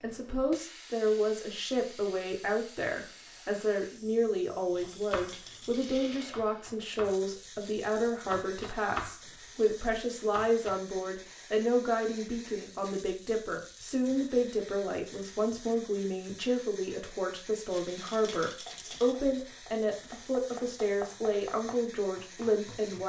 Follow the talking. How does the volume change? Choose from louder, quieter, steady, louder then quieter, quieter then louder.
steady.